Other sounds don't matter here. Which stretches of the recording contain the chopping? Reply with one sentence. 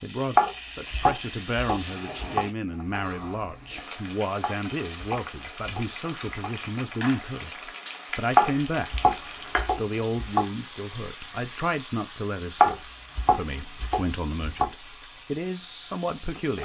The chopping can be heard from 0.3 to 2.5 s, from 4.4 to 6.5 s, from 8.3 to 10.4 s and from 12.6 to 14.7 s.